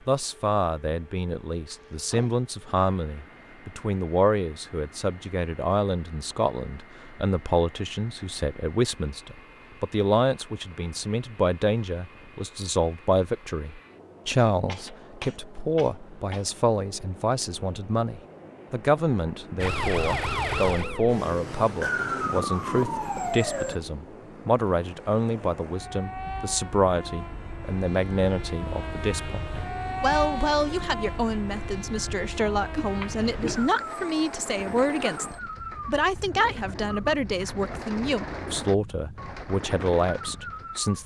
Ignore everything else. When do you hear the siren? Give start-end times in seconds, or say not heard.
19.6-23.8.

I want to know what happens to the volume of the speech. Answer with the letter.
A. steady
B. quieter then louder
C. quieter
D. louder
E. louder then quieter
A.